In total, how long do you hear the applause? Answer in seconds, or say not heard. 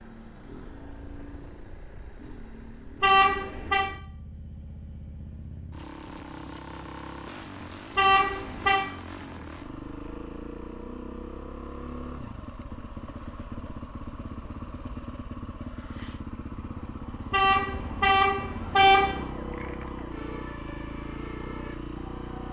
not heard.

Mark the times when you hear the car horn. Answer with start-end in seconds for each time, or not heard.
3.0-3.9, 8.0-8.8, 17.3-19.2.